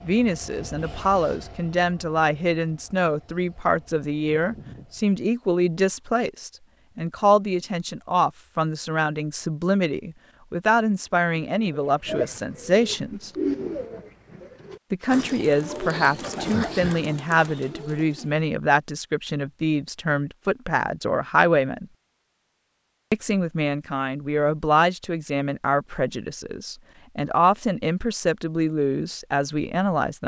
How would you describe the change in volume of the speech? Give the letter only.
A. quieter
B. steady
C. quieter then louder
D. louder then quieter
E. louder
B.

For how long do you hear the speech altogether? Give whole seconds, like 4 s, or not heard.
27 s.